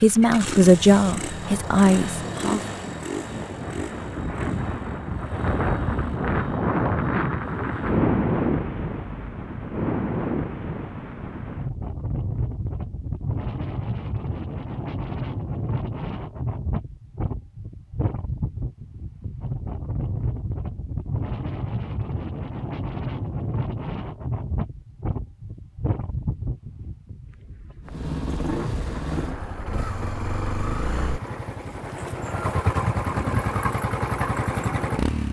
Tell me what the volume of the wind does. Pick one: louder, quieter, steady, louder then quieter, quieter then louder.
quieter.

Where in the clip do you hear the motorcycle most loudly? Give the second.
33 s.